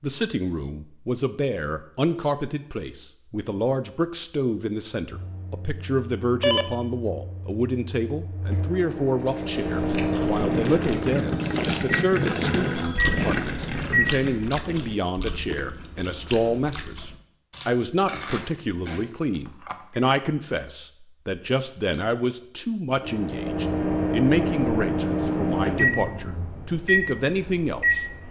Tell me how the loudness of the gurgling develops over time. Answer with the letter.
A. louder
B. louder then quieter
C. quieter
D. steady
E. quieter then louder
B.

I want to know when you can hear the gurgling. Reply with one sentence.
You can hear the gurgling from 9.2 to 15.0 s.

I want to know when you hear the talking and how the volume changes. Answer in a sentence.
You can hear the talking from 0.0 to 28.0 s, at a steady volume.